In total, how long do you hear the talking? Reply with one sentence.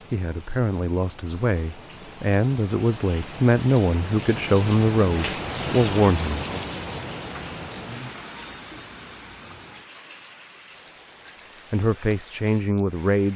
The talking can be heard for 8 seconds in total.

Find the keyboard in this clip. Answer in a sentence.
You can't hear the keyboard here.